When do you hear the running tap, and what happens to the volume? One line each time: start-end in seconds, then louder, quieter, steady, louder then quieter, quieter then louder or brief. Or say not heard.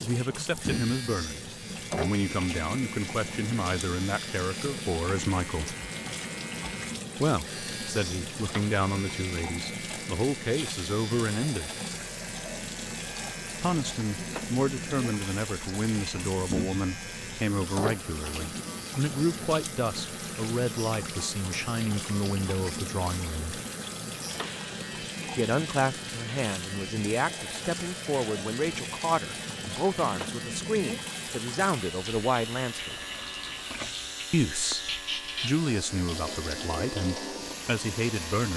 0.0-38.5 steady.